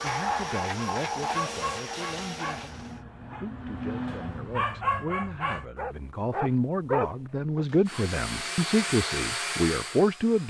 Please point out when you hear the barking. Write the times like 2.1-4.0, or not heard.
0.1-7.7.